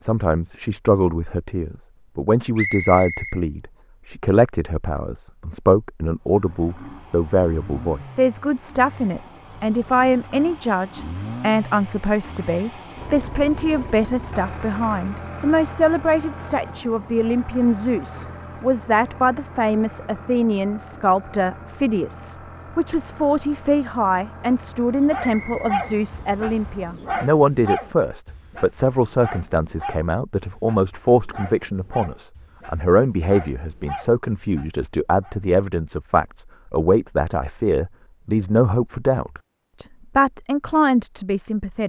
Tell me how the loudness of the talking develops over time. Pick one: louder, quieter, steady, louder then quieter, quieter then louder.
steady.